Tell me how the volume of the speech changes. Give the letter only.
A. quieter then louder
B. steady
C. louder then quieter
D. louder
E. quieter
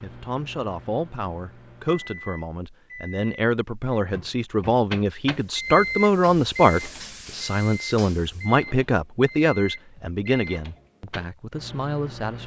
C.